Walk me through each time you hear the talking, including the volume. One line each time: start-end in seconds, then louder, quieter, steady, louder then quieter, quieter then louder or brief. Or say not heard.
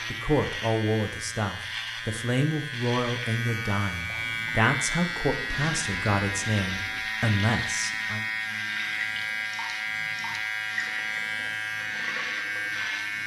0.1-8.2 steady.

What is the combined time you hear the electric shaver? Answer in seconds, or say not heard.
13 s.